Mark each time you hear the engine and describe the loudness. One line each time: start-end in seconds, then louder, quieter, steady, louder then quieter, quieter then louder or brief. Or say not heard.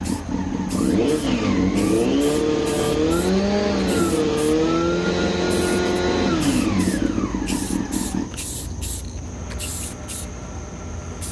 0.0-11.2 quieter.